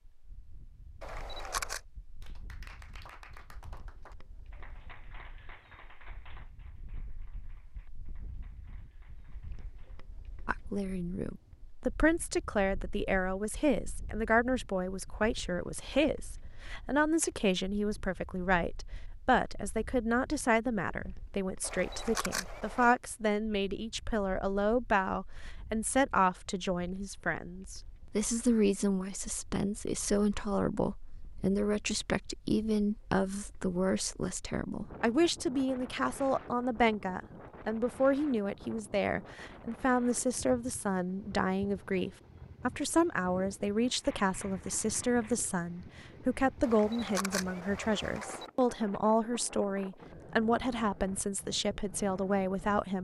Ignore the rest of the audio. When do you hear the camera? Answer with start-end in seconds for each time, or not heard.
1.0-1.8, 21.6-22.9, 46.6-48.5.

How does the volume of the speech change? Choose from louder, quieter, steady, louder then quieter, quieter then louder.
steady.